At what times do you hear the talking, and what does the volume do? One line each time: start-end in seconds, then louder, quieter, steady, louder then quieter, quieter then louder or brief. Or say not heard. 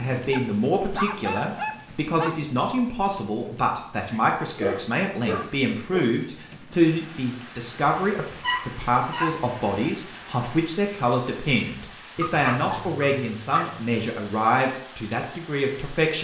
0.0-16.1 steady.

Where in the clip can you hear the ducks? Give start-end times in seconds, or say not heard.
not heard.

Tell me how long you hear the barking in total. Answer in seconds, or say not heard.
7 s.